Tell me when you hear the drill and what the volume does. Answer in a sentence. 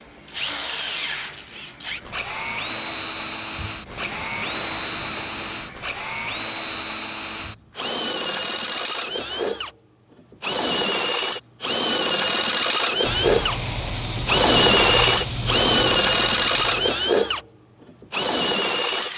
You can hear the drill from 0.0 to 19.1 s, getting louder.